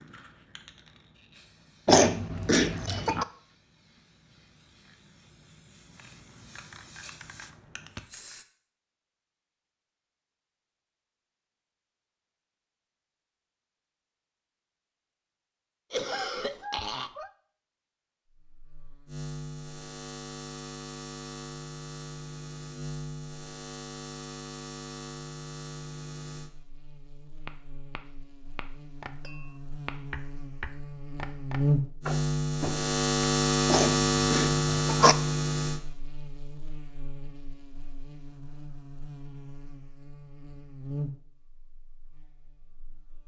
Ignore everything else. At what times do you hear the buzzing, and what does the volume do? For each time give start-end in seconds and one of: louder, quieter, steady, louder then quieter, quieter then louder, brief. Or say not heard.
18.3-43.2 louder then quieter.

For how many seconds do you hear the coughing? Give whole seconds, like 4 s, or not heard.
4 s.